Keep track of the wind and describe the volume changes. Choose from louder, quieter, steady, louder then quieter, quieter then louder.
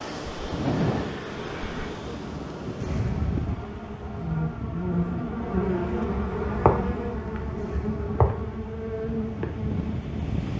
quieter then louder.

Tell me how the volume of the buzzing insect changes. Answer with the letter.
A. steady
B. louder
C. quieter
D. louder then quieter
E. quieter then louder
B.